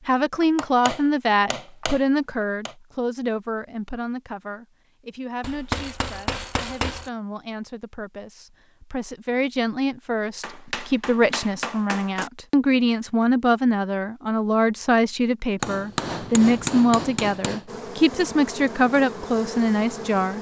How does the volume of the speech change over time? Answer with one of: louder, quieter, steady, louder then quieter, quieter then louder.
quieter then louder.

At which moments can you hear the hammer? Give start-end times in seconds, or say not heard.
0.4-2.8, 5.4-7.1, 10.4-12.3, 15.6-17.6.